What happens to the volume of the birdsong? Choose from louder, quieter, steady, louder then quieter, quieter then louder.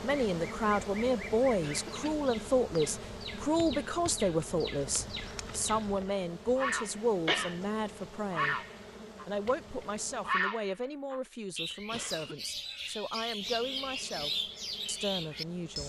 louder.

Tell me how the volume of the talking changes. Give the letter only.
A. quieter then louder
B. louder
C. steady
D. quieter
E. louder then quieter
D.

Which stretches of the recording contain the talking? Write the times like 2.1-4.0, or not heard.
0.0-8.6, 9.2-15.8.